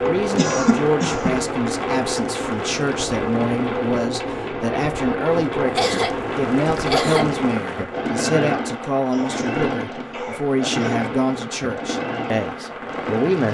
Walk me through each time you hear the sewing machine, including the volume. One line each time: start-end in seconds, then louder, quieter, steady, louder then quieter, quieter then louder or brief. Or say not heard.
0.0-13.4 steady.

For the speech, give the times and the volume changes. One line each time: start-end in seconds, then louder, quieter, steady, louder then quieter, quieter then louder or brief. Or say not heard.
0.0-13.4 steady.